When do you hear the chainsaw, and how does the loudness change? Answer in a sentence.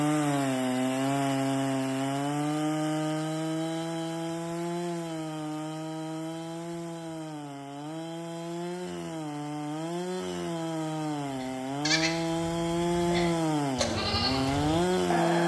You can hear the chainsaw from 0.0 to 15.4 s, getting quieter then louder.